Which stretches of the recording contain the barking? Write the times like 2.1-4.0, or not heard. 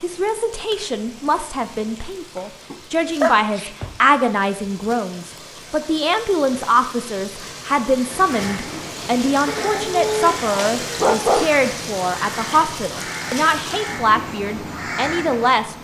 2.7-4.2, 9.4-11.5.